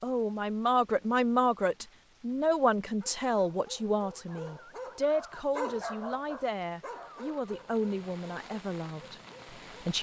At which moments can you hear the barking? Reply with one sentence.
The barking can be heard from 3.0 to 9.8 s.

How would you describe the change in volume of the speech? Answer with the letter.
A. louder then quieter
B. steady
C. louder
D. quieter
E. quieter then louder
D.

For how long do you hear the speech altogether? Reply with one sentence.
The speech can be heard for 10 seconds in total.